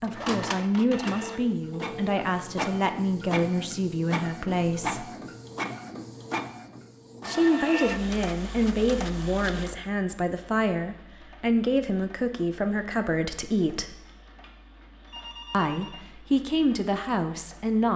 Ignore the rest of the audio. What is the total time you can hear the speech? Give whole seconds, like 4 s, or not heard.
14 s.